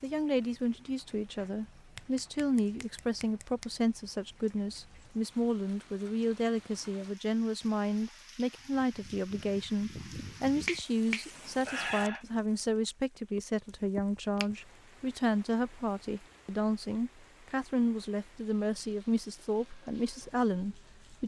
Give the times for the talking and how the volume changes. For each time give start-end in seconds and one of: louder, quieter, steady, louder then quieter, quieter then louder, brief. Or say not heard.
0.0-21.2 steady.